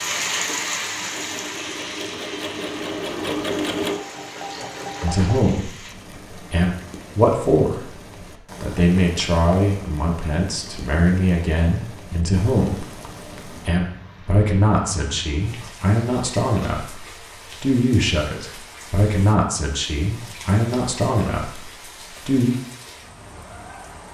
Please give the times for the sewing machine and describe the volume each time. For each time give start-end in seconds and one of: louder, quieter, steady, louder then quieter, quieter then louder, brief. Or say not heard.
0.0-5.5 louder then quieter.